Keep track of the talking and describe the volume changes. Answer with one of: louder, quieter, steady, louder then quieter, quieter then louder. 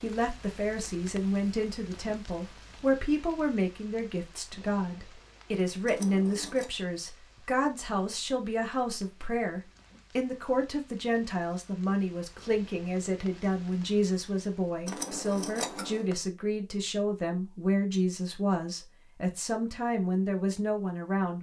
steady.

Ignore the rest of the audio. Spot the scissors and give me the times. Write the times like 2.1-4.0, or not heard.
5.8-6.7, 14.8-16.1.